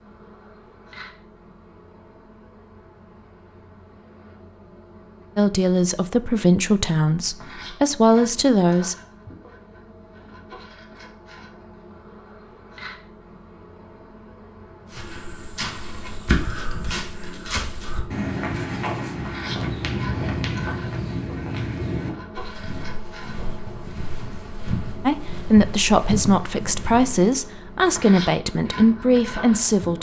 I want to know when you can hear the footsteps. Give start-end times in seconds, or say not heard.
14.9-27.2.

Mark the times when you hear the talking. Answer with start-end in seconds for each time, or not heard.
5.3-8.9, 25.1-29.9.